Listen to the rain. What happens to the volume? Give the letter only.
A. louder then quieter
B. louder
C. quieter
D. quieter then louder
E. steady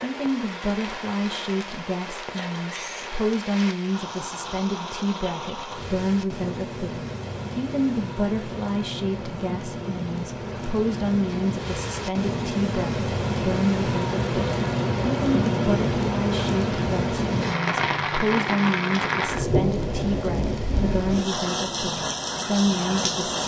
B.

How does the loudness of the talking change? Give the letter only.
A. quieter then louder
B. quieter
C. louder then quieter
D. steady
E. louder
D.